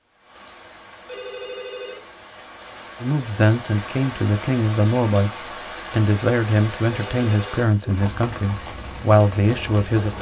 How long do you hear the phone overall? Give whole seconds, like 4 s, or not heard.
2 s.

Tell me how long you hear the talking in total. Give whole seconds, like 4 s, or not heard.
7 s.